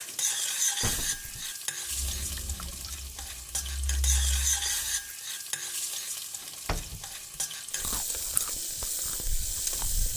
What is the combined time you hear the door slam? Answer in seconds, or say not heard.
2 s.